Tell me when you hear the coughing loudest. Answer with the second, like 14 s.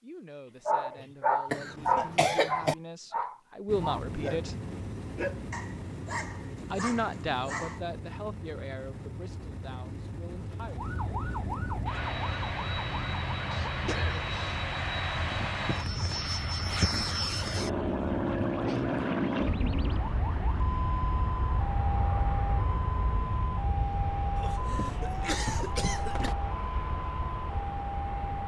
2 s.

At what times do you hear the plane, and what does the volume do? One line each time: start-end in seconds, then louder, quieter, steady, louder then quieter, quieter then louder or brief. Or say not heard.
3.6-28.4 louder then quieter.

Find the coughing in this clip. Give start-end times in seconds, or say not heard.
1.5-2.8, 13.5-14.7, 24.4-26.4.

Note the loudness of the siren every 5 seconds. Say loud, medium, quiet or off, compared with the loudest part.
off, off, loud, loud, loud, loud.